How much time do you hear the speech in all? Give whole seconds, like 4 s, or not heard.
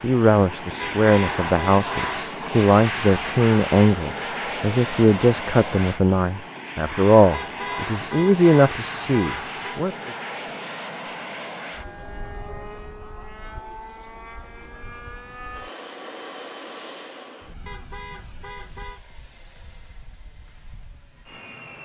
10 s.